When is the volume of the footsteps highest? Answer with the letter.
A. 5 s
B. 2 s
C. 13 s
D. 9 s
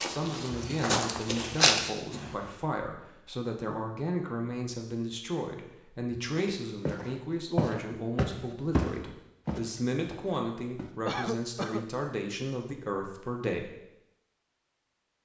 B.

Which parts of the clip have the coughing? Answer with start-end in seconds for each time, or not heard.
11.1-11.8.